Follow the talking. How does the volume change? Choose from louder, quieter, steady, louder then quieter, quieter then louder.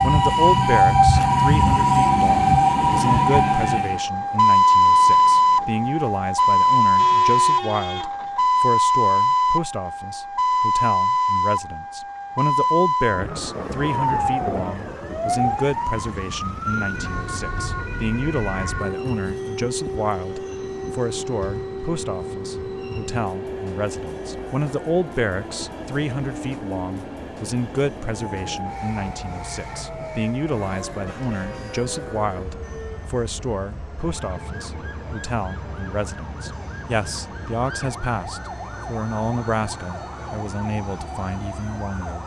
steady.